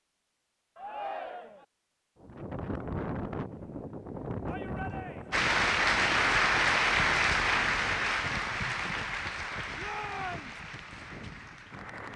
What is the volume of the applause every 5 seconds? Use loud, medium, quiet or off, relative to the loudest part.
off, loud, quiet.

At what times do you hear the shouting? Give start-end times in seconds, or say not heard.
0.8-1.6, 4.5-5.5, 9.8-10.6.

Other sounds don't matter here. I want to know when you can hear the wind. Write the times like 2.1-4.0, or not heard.
2.2-12.1.